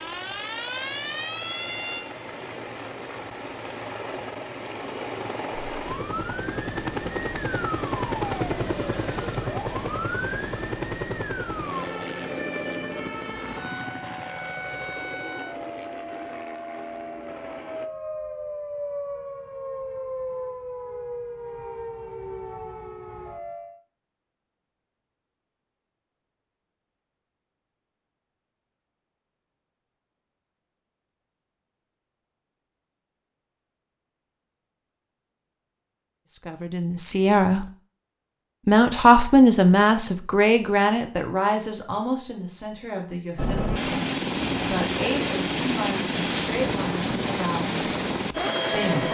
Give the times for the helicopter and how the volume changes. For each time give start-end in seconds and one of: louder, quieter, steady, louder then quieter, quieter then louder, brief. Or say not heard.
0.0-17.9 louder then quieter
43.4-49.0 steady.